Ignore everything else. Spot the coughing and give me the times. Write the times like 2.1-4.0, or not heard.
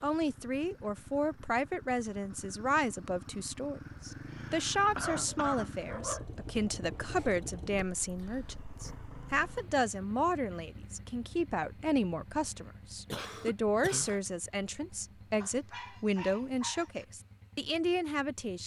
4.3-5.7, 13.1-14.2.